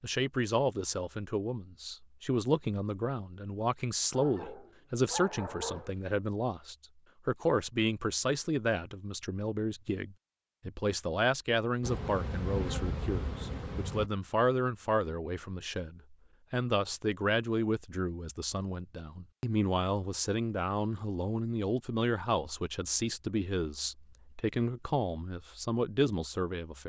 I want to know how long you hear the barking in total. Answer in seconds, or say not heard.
2 s.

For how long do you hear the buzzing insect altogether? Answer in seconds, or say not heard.
2 s.